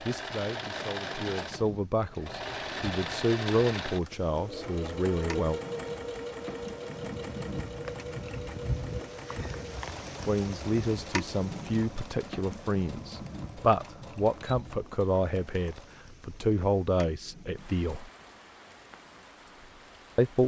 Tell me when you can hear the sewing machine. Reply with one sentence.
The sewing machine can be heard from 0.0 to 15.9 s.